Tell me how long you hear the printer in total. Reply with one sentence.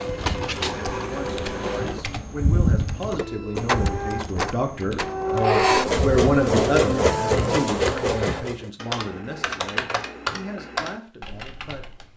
You can hear the printer for 9 seconds altogether.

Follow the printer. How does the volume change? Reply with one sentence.
The volume of the printer goes down, then up.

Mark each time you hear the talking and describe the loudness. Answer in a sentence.
You can hear the talking from 0.0 to 11.9 s, getting louder then quieter.